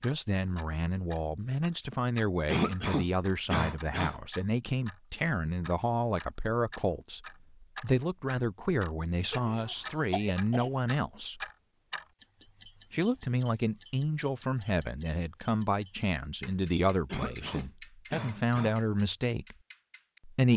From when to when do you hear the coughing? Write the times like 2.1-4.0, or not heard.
2.5-4.2, 9.3-10.7, 17.1-18.8.